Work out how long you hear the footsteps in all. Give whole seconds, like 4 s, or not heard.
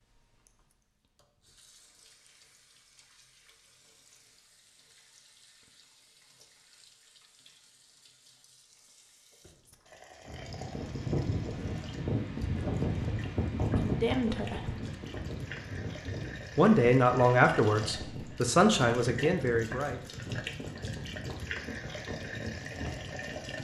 not heard.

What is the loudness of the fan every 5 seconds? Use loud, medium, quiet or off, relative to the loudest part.
off, off, loud, medium, medium.